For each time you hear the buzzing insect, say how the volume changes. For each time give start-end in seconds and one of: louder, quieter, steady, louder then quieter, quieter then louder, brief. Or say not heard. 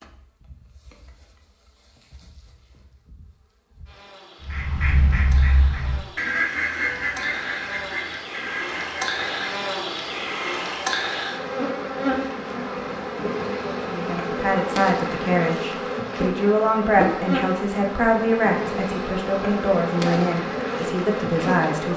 0.0-21.9 louder.